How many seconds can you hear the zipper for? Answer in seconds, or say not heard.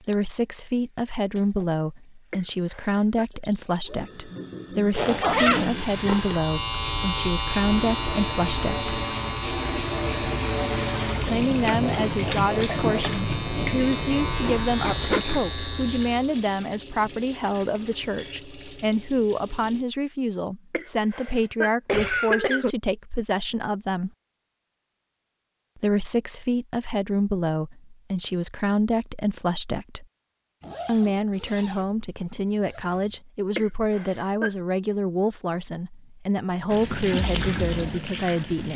5 s.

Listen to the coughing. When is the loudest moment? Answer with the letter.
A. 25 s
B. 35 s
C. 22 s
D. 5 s
C.